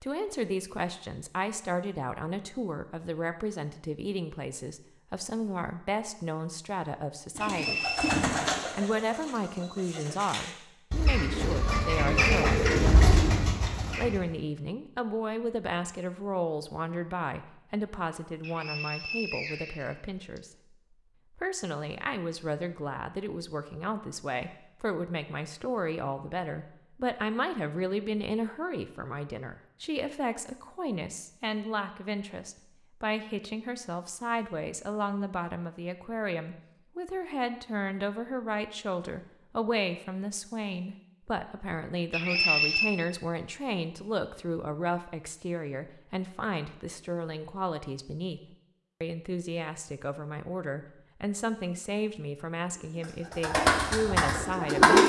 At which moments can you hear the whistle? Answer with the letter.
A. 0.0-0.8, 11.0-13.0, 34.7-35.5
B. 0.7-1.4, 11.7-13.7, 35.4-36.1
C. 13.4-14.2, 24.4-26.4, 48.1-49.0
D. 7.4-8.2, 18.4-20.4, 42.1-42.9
D.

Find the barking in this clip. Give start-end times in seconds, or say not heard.
not heard.